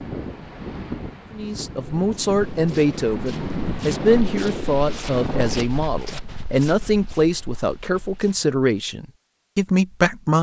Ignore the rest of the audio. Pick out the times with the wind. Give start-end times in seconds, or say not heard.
0.0-5.7.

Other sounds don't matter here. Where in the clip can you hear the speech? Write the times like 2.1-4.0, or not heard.
1.3-10.3.